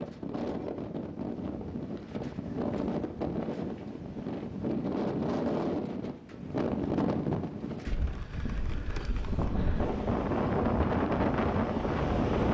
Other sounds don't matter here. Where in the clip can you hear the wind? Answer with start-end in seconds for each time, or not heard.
0.0-12.4.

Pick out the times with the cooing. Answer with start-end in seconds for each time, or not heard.
not heard.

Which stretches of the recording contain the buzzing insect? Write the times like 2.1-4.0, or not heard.
9.2-12.4.